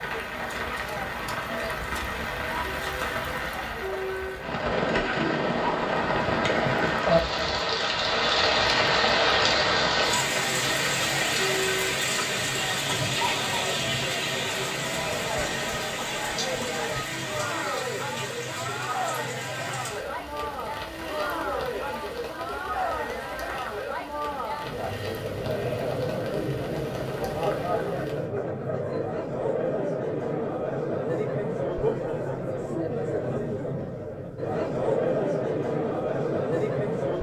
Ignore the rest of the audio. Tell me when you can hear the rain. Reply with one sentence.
The rain can be heard from 0.0 to 28.3 s.